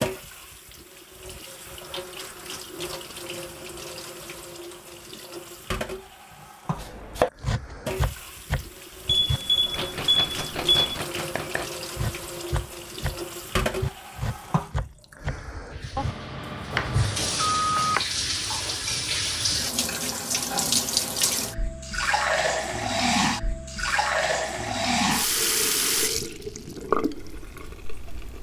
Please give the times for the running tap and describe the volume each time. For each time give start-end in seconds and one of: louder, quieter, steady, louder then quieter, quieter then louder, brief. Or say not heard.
0.0-28.3 louder.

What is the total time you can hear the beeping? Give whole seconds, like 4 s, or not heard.
4 s.